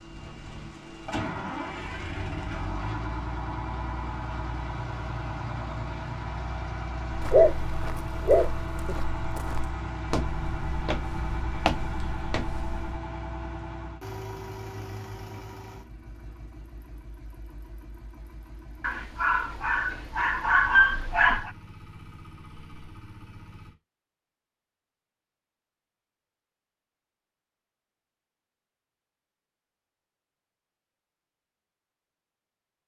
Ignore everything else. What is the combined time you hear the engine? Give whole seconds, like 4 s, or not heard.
24 s.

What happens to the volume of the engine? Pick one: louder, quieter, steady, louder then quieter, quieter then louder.
quieter.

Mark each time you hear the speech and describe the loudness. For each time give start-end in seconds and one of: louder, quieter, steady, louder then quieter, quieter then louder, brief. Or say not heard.
not heard.